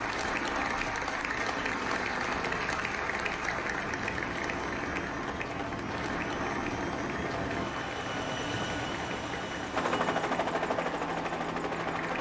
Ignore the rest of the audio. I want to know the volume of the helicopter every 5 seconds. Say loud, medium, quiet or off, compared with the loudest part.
medium, loud, loud.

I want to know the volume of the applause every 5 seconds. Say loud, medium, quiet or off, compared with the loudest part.
loud, medium, medium.